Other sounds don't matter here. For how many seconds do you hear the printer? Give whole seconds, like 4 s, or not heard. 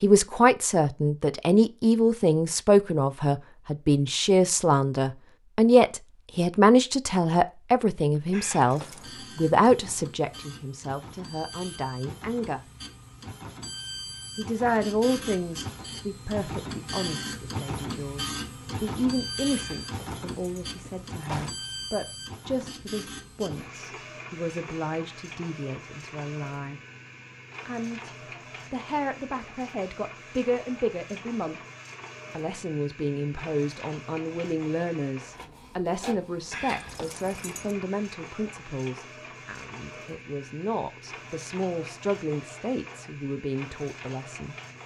36 s.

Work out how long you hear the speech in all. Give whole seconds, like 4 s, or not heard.
41 s.